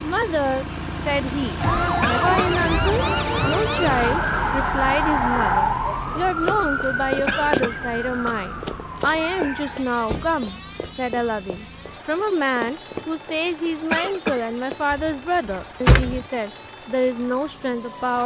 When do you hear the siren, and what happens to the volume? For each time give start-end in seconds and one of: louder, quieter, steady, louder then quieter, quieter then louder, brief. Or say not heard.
1.6-18.2 quieter.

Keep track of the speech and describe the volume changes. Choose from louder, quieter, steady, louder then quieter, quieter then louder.
steady.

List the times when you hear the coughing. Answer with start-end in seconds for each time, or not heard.
2.0-2.6, 7.2-7.8, 13.9-14.5.